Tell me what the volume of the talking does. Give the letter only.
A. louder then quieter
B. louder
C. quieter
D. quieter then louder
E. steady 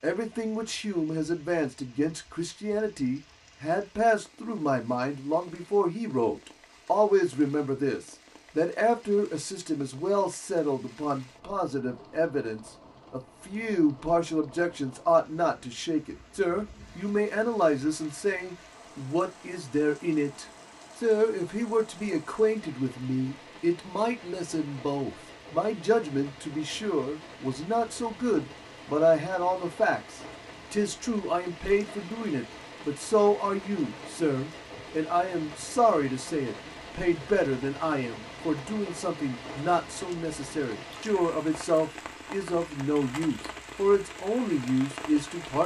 E.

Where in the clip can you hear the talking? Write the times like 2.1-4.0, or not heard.
0.0-45.6.